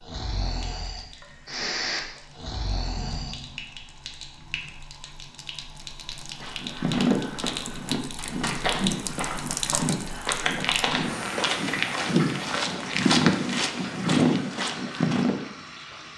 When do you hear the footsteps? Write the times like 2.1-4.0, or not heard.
6.3-15.4.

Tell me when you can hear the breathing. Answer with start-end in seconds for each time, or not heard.
0.0-3.4.